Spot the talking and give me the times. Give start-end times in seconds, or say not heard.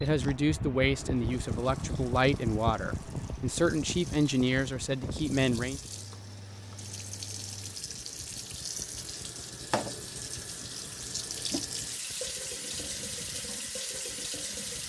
0.0-5.8.